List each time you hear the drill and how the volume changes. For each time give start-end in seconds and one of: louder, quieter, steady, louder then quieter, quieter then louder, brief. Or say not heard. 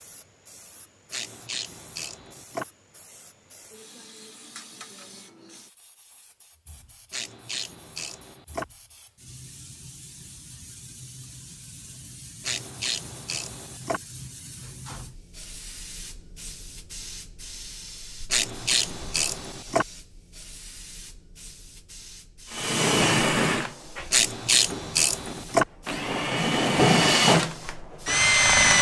22.5-28.7 quieter then louder.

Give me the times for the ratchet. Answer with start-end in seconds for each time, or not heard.
1.1-2.6, 7.1-8.7, 12.4-14.0, 18.3-19.9, 24.1-25.6.